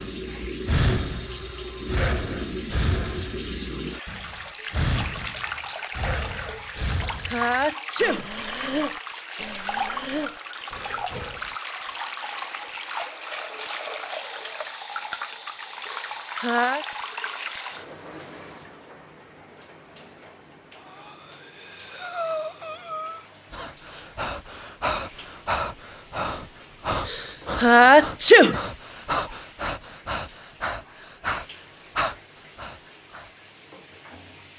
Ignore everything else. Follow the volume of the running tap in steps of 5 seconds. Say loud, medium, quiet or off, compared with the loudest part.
loud, loud, loud, loud, quiet, quiet, quiet.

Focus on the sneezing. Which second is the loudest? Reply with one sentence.
The loudest moment of the sneezing is at 28 seconds.